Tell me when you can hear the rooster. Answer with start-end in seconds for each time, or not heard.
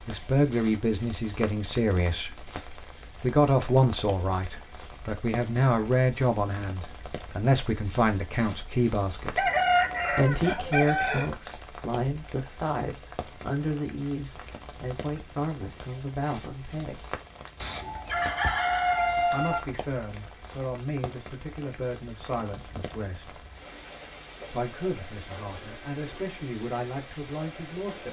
9.3-11.3, 17.6-19.6.